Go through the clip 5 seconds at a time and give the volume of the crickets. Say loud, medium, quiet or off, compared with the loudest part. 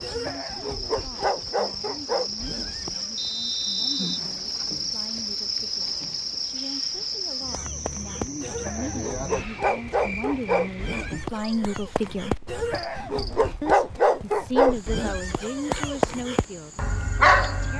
loud, loud, medium, quiet.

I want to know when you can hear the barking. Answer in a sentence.
The barking can be heard from 0.0 to 3.2 s and from 7.4 to 17.7 s.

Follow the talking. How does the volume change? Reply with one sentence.
The loudness of the talking goes up.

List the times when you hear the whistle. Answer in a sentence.
You can hear the whistle from 3.1 to 4.3 s.